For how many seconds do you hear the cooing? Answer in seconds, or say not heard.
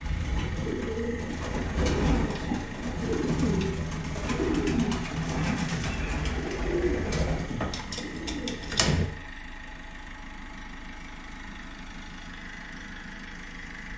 9 s.